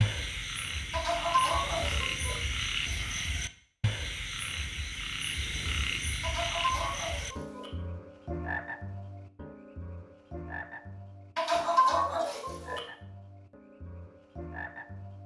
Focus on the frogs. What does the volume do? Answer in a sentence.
The volume of the frogs goes down.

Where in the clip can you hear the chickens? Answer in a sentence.
The chickens can be heard from 0.9 to 2.4 s, from 6.2 to 7.7 s and from 11.3 to 12.8 s.